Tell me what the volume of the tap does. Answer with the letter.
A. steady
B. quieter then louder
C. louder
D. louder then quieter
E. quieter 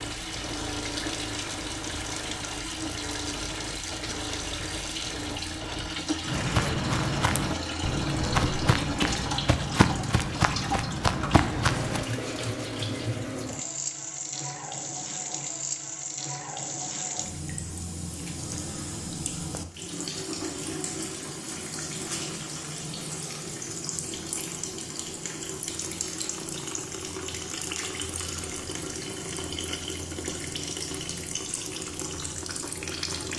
A.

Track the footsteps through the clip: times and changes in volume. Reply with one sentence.
You can hear the footsteps from 6.2 to 12.1 s, at a steady volume.